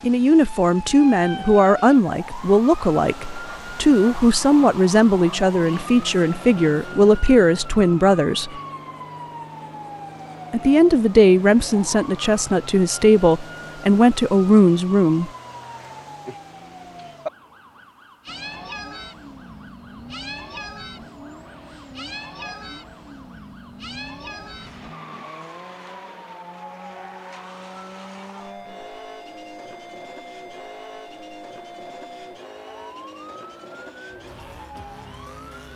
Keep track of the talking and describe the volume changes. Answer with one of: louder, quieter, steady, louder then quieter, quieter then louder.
steady.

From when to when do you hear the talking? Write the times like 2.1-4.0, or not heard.
0.0-8.6, 10.5-15.3.